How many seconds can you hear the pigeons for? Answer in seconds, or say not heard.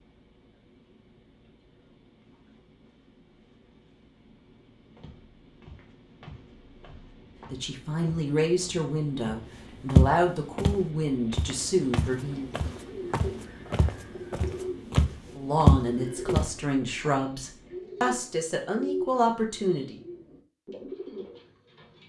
10 s.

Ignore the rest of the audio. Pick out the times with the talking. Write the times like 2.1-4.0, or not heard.
7.5-12.4, 15.3-20.0.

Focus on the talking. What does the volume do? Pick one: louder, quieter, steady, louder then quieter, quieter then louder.
steady.